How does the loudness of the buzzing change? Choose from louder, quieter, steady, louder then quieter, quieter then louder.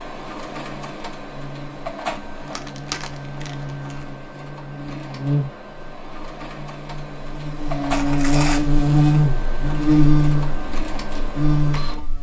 louder.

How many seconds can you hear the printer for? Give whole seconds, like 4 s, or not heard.
12 s.